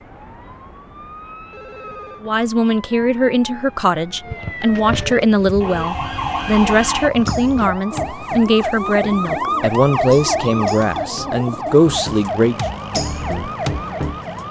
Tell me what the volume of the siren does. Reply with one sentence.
The loudness of the siren goes up.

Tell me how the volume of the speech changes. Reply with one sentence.
The loudness of the speech stays about the same.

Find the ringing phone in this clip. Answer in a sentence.
You can hear the ringing phone from 1.5 to 2.2 s.